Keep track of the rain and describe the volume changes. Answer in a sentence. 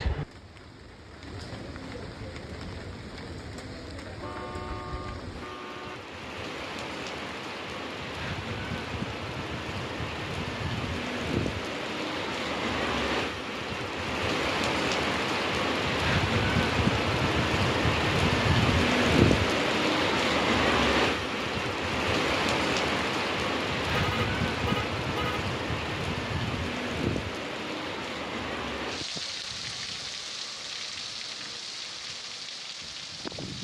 The loudness of the rain goes up, then down.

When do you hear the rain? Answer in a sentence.
The rain can be heard from 0.0 to 33.5 s.